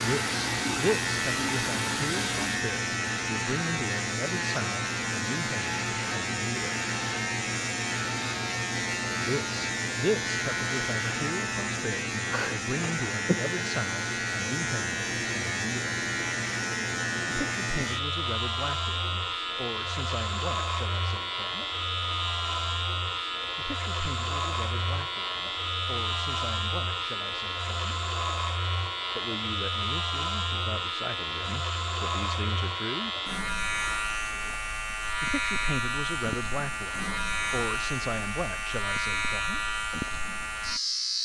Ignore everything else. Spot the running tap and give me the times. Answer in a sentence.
The running tap can be heard from 0.0 to 2.6 s.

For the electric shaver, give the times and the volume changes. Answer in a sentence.
You can hear the electric shaver from 0.0 to 41.2 s, at a steady volume.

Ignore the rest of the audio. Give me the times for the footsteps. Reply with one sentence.
You can't hear the footsteps here.